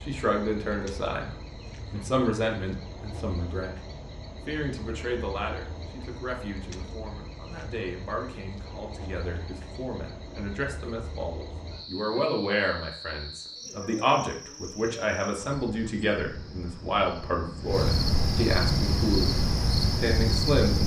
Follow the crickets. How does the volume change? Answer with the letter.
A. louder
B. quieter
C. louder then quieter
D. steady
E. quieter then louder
A.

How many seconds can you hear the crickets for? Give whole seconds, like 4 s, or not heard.
21 s.